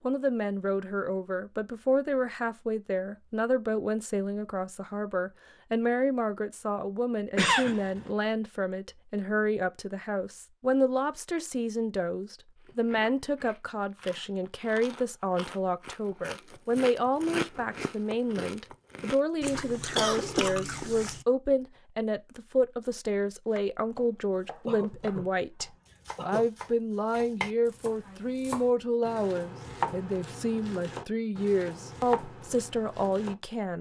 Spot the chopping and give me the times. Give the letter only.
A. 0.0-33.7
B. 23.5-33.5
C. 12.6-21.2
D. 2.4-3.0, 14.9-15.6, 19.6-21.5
B.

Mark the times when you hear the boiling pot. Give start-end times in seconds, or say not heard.
not heard.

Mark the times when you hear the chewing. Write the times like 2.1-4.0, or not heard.
12.6-21.2.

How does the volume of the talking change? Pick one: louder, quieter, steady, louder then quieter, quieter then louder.
steady.